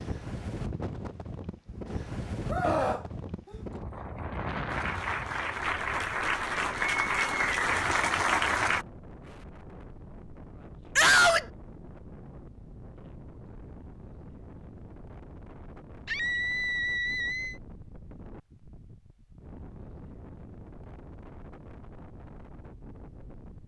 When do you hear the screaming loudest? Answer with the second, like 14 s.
11 s.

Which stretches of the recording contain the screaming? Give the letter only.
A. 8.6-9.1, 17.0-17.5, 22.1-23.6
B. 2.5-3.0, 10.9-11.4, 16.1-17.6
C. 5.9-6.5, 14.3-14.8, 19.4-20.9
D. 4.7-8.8
B.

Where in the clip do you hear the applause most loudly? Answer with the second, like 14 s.
8 s.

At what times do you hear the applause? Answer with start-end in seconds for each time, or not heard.
4.7-8.8.